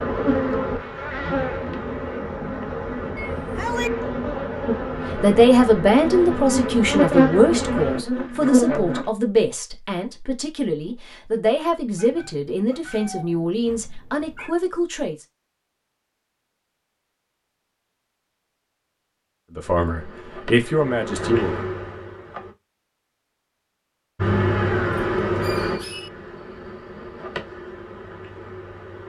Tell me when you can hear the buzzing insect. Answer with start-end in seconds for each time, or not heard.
0.0-9.1, 19.6-22.6, 24.1-29.0.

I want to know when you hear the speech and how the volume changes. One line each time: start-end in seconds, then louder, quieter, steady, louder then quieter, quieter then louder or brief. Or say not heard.
5.2-15.2 quieter
19.6-21.5 brief.